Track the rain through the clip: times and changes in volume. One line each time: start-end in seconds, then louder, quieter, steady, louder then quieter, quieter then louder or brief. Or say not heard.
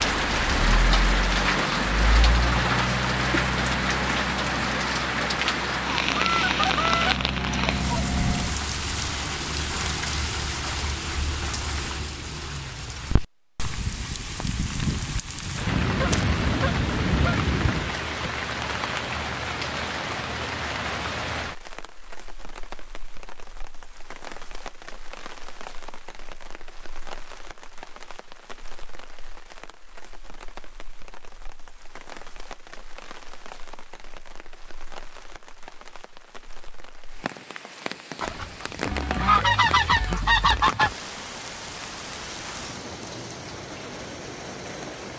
0.0-45.1 quieter then louder.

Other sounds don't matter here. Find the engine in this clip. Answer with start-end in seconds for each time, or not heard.
0.0-8.6.